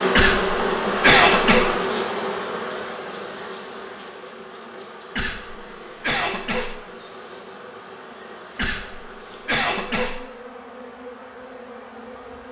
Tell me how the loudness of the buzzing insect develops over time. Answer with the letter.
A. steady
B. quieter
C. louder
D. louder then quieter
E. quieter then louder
B.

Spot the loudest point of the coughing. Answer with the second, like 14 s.
1 s.